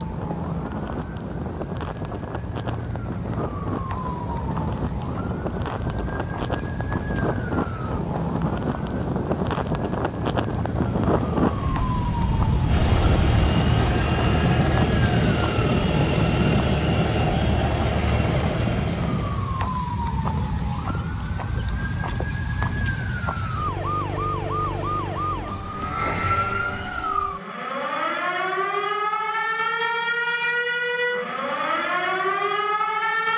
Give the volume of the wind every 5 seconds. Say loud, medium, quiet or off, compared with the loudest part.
medium, loud, loud, loud, off, off, off.